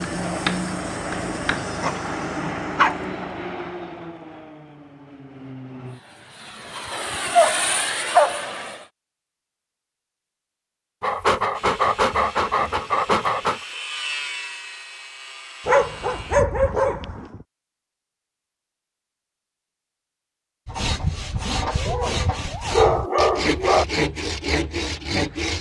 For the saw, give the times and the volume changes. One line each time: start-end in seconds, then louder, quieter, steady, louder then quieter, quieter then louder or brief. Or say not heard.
11.5-16.4 louder then quieter
20.6-25.5 steady.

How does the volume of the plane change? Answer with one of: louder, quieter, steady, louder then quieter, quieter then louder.
quieter then louder.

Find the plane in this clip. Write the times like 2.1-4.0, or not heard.
0.0-8.8.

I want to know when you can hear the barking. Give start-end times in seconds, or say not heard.
1.6-3.0, 6.9-8.5, 11.0-13.6, 15.7-17.4, 21.9-23.9.